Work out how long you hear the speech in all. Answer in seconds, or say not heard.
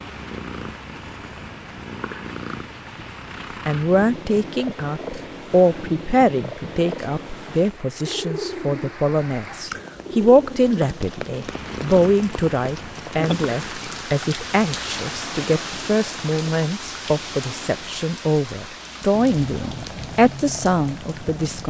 18 s.